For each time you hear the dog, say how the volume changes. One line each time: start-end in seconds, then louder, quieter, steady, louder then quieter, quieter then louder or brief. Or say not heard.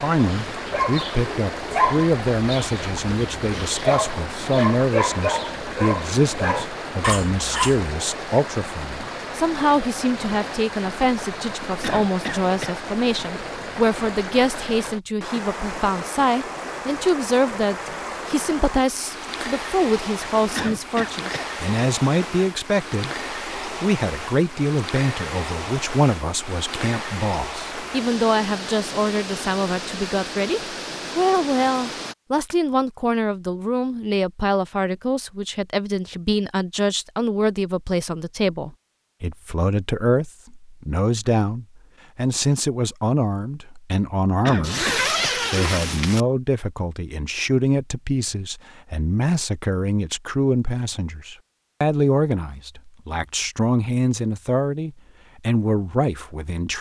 0.2-7.8 quieter then louder.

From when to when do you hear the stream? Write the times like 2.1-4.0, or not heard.
0.0-32.1.